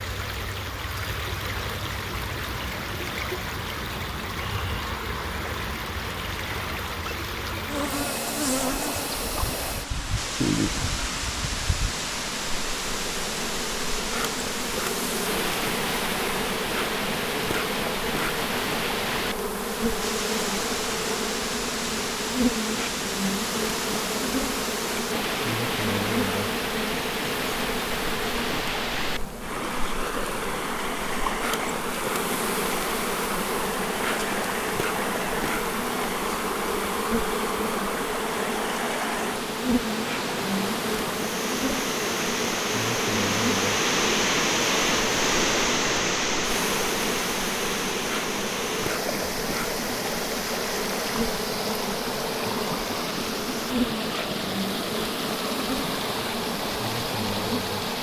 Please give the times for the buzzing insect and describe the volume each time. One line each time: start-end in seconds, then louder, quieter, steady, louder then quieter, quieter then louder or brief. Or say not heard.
7.7-57.9 steady.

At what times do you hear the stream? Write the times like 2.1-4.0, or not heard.
0.0-57.9.